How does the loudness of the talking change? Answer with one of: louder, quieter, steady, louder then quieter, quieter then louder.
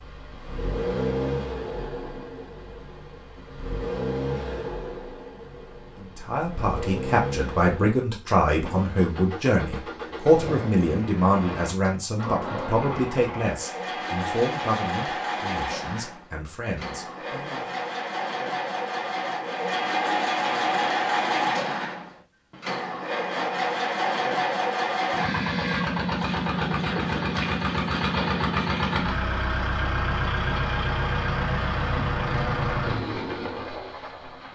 quieter.